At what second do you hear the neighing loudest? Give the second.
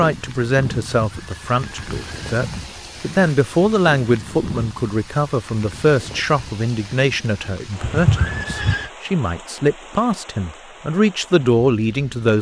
8 s.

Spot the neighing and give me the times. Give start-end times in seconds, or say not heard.
1.0-2.6, 7.8-8.9.